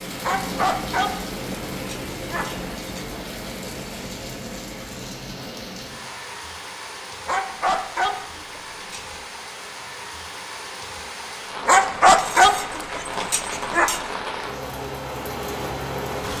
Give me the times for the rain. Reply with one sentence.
The rain can be heard from 0.0 to 16.3 s.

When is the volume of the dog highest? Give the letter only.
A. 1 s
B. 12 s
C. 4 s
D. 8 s
B.